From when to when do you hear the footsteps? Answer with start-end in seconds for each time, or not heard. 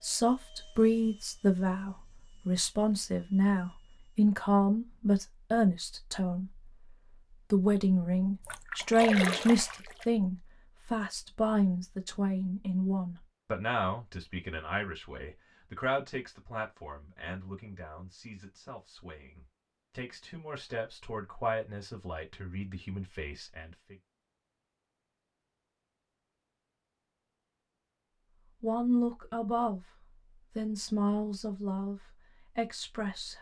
not heard.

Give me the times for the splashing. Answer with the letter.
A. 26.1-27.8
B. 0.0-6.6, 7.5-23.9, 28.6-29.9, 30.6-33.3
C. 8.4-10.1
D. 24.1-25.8
C.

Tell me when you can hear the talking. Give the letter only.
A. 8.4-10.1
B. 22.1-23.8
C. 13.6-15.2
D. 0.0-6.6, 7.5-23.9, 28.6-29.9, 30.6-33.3
D.